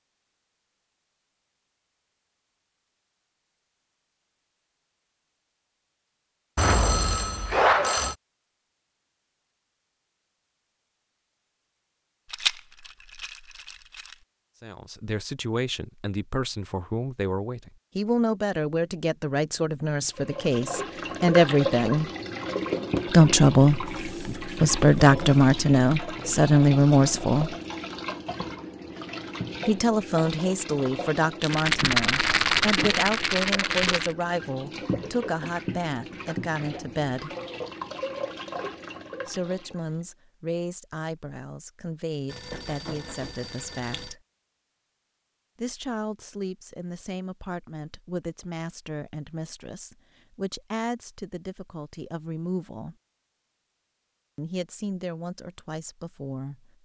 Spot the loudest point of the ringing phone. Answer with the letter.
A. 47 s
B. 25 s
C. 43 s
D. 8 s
D.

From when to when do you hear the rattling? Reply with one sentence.
The rattling can be heard from 12.3 to 14.2 s and from 31.4 to 34.1 s.